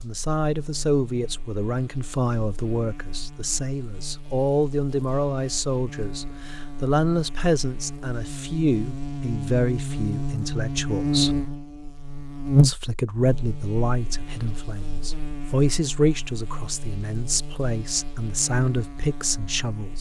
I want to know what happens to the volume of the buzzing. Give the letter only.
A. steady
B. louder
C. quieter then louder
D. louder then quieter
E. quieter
D.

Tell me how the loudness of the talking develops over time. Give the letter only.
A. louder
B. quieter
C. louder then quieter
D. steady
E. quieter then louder
D.